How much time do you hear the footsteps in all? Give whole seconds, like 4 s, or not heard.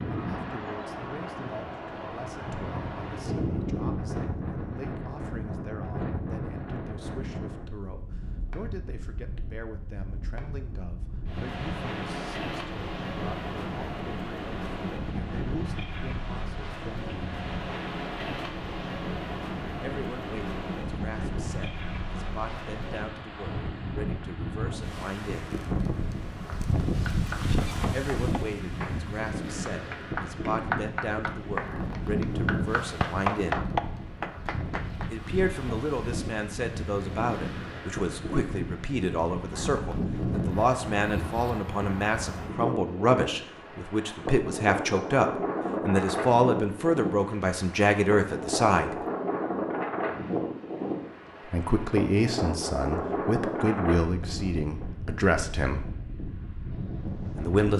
not heard.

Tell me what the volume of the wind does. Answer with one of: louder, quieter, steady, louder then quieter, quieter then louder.
steady.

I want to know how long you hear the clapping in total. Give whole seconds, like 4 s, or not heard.
9 s.